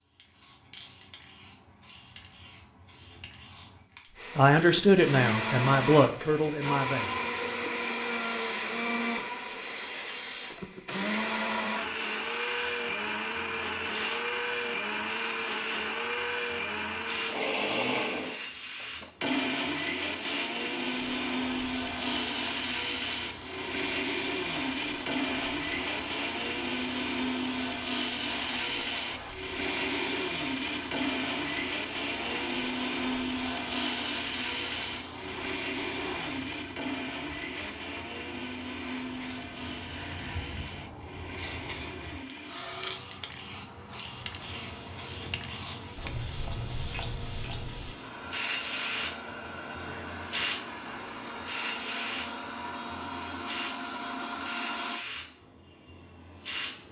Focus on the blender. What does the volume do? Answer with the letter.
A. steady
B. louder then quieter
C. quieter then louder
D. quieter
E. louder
D.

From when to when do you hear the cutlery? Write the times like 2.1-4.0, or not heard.
not heard.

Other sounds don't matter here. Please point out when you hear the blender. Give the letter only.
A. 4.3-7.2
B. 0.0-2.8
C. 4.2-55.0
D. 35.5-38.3
C.